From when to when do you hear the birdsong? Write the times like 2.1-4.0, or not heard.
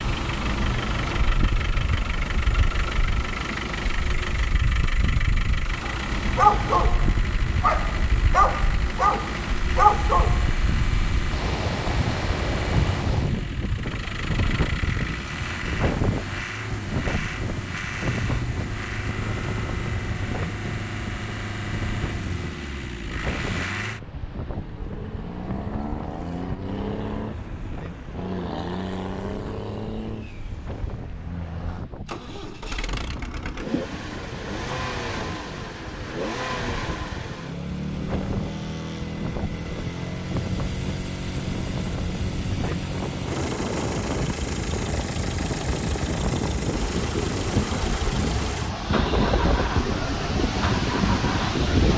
not heard.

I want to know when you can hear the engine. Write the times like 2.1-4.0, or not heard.
0.0-51.9.